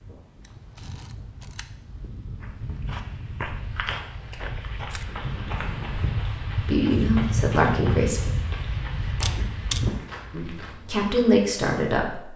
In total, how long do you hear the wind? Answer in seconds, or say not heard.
10 s.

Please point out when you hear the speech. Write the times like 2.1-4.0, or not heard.
6.6-8.3, 10.3-12.3.